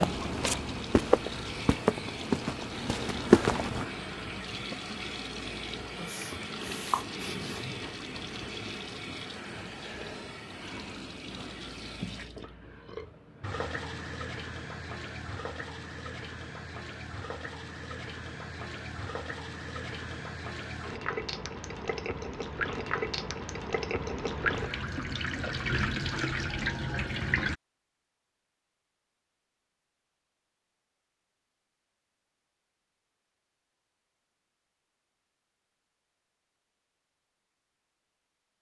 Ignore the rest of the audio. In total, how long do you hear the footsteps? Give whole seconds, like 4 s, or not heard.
4 s.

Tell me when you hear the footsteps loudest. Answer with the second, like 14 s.
3 s.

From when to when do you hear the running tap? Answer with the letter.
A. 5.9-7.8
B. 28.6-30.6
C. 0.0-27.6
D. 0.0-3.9
C.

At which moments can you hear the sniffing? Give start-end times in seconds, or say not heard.
5.9-7.8.